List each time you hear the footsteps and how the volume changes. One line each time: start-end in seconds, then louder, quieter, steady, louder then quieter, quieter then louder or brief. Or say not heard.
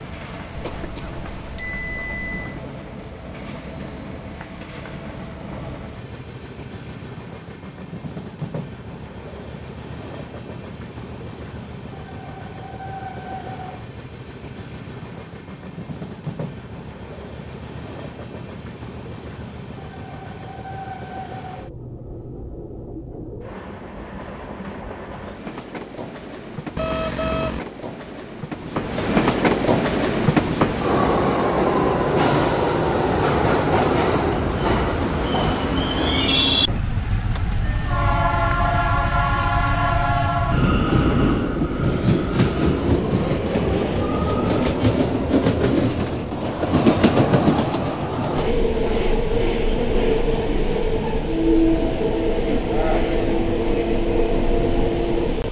not heard.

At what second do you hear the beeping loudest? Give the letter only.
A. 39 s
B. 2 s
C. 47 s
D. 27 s
D.